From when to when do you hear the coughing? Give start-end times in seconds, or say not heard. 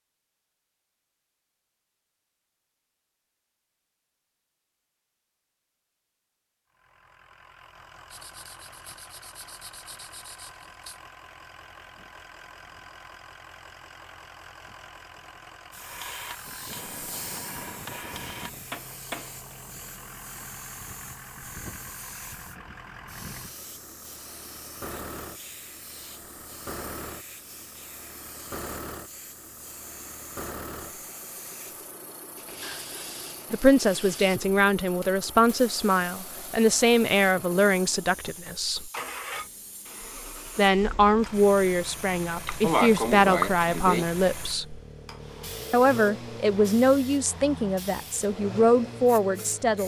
42.5-44.0.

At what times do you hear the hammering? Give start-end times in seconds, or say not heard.
15.8-19.4.